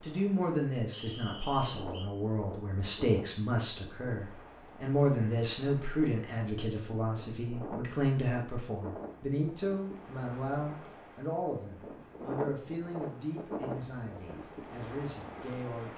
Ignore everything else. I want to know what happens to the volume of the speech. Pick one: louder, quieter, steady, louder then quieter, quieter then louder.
quieter.